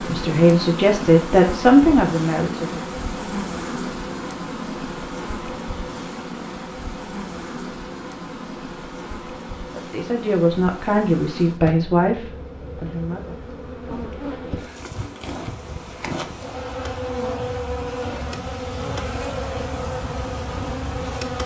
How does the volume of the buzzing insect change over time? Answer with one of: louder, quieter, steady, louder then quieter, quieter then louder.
quieter then louder.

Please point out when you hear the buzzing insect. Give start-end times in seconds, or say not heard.
0.0-21.4.